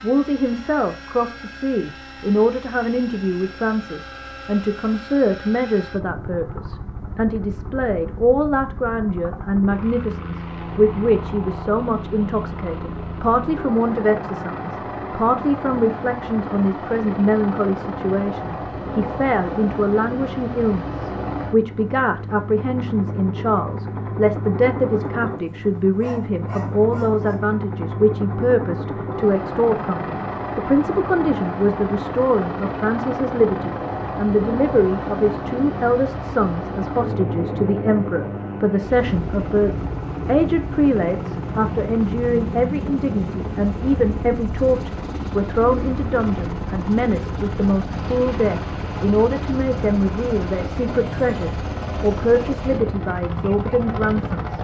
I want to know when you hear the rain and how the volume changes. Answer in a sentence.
You can't hear the rain here.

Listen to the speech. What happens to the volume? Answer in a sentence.
The loudness of the speech stays about the same.